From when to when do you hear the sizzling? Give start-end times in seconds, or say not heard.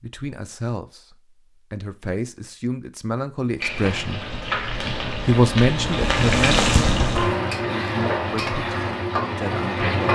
3.5-10.1.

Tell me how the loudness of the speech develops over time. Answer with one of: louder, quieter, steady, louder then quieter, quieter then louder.
louder then quieter.